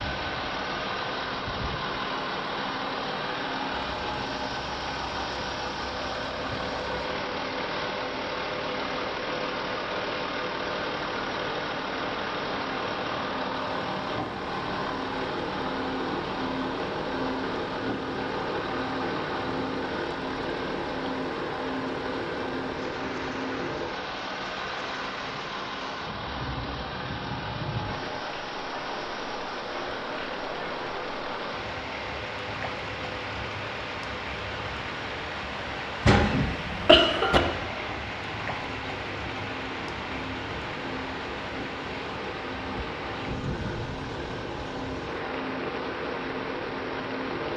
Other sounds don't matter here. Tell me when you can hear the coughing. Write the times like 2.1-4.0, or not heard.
36.0-37.4.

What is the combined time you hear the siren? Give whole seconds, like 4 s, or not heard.
not heard.